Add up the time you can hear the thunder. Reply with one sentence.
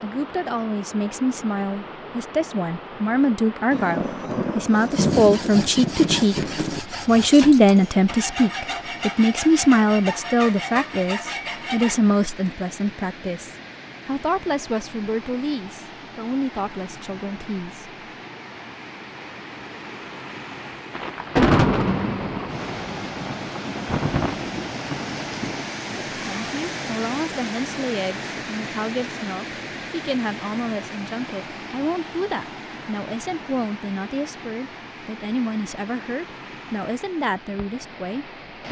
You can hear the thunder for 8 seconds altogether.